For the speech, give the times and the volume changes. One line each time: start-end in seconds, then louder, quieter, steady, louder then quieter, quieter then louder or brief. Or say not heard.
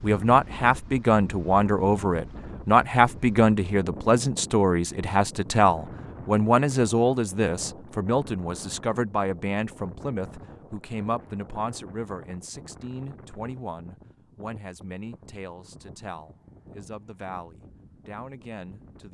0.0-19.0 quieter.